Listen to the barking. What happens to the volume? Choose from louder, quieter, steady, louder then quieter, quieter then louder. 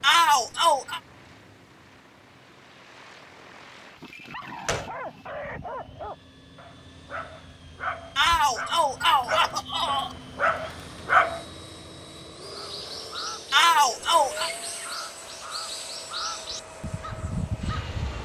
louder.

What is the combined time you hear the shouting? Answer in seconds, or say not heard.
4 s.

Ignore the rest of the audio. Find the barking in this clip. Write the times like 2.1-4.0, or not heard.
3.9-11.4.